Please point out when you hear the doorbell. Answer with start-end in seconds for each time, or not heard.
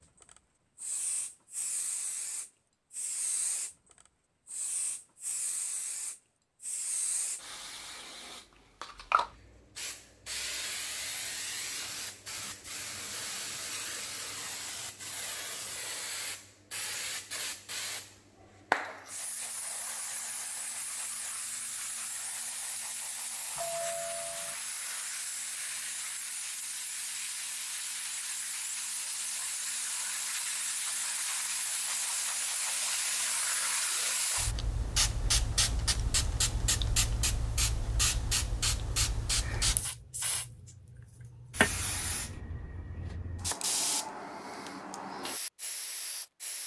23.6-24.6.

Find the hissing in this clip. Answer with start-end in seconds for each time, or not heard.
0.2-46.6.